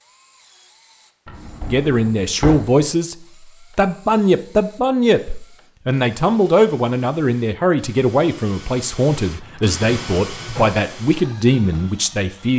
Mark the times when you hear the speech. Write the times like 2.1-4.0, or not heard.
1.6-3.1, 3.8-12.5.